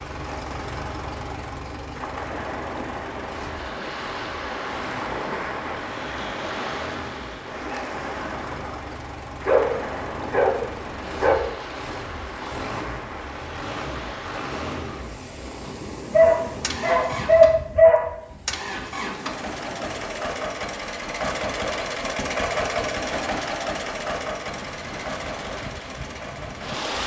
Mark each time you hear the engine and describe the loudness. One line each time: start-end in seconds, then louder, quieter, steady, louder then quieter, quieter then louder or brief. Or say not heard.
0.0-27.0 louder.